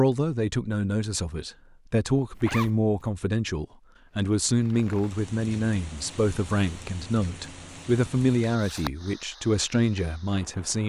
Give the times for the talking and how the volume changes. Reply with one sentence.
You can hear the talking from 0.0 to 10.8 s, at a steady volume.